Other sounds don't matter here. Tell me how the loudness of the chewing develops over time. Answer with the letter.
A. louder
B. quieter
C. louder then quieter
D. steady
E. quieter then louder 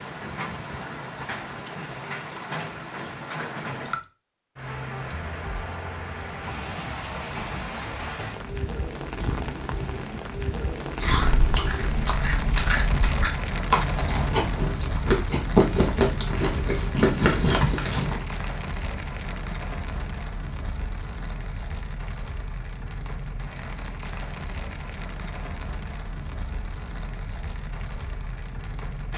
A.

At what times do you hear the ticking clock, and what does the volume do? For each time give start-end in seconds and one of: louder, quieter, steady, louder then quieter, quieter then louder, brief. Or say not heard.
not heard.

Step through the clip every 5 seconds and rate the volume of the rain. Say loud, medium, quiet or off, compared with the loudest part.
loud, loud, loud, loud, medium, medium.